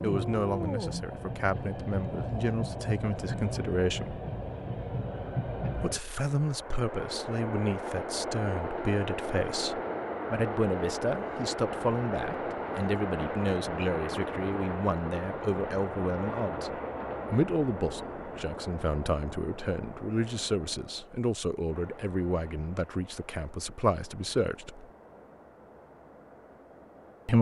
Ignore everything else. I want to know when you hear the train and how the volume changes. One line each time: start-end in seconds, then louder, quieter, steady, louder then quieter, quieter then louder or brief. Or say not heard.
0.0-27.3 quieter.